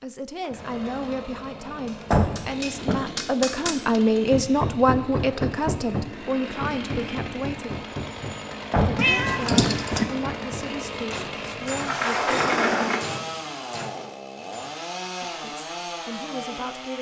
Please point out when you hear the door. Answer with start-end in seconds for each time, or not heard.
2.1-3.1, 8.7-9.8, 11.7-13.0.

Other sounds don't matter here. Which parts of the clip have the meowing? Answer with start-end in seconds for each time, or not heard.
8.9-10.1.